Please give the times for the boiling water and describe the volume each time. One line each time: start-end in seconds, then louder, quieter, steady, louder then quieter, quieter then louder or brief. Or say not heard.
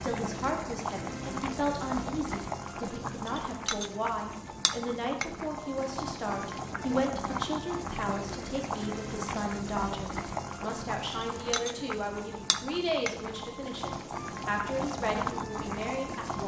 0.0-16.4 steady.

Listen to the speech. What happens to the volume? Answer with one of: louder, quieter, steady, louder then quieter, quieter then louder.
steady.